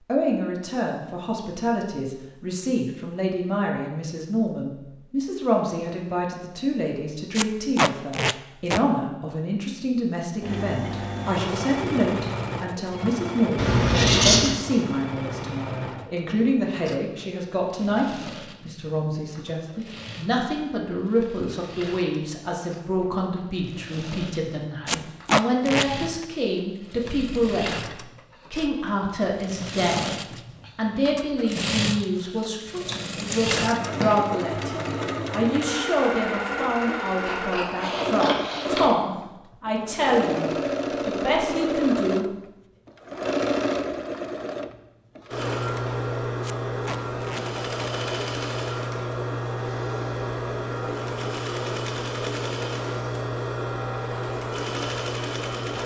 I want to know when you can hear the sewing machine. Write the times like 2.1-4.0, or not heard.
10.4-55.8.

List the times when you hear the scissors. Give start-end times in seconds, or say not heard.
13.6-14.6, 32.9-34.1, 37.2-38.8.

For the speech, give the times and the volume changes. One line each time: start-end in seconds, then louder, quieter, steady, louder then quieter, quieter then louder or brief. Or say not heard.
0.1-30.1 steady
30.8-42.2 steady.